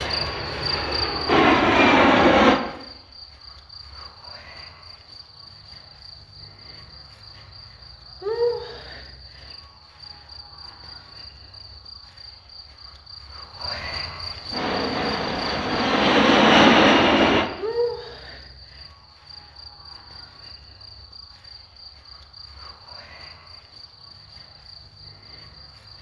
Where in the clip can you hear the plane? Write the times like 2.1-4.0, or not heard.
0.0-2.6, 14.5-17.5.